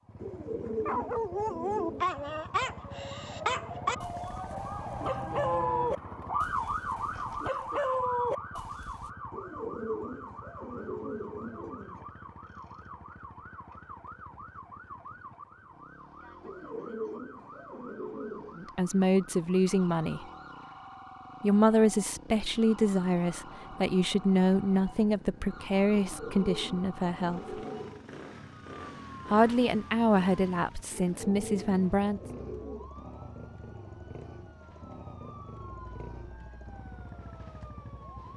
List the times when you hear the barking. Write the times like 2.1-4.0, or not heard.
0.7-9.1.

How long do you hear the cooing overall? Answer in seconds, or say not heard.
11 s.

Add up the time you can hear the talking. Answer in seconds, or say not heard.
11 s.